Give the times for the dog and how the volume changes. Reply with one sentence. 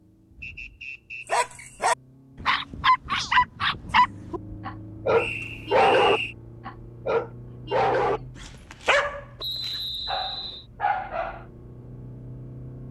You can hear the dog from 1.2 to 11.4 s, getting quieter.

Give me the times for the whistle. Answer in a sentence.
The whistle can be heard from 0.4 to 1.7 s, from 5.2 to 6.3 s and from 9.3 to 10.7 s.